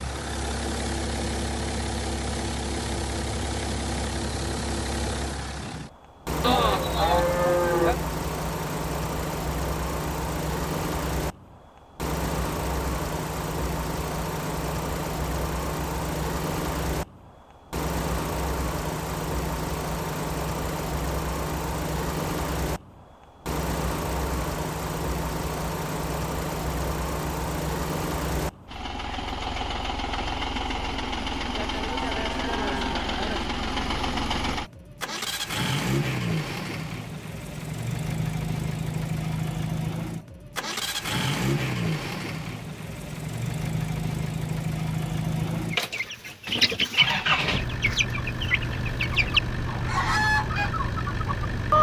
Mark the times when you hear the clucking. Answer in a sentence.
The clucking can be heard from 45.7 to 51.7 s.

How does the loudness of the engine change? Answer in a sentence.
The volume of the engine stays about the same.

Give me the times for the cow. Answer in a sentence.
The cow can be heard from 6.4 to 8.0 s and from 31.4 to 33.5 s.